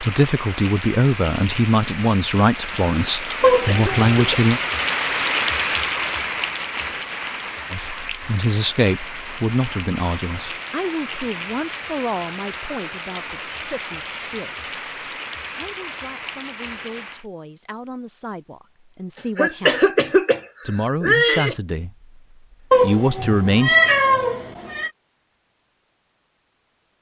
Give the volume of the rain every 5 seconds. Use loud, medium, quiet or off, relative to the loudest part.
loud, loud, medium, medium, off, off.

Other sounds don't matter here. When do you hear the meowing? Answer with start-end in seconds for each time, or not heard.
3.4-4.4, 22.7-24.9.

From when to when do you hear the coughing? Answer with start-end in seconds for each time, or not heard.
3.2-4.2, 19.4-21.6.